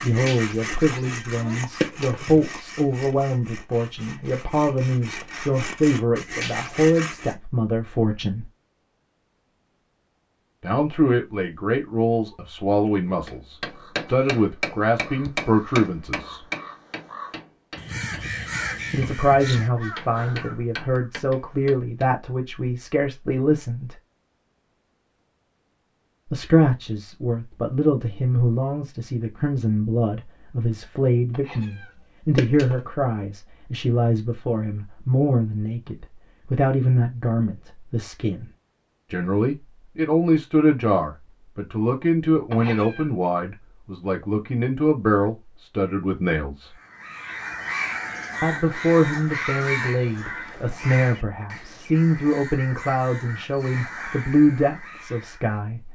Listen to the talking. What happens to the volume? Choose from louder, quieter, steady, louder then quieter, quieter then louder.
steady.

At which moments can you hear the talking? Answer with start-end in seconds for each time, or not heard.
0.0-8.5, 10.6-16.4, 18.9-23.9, 26.3-38.5, 39.1-46.7, 48.4-55.9.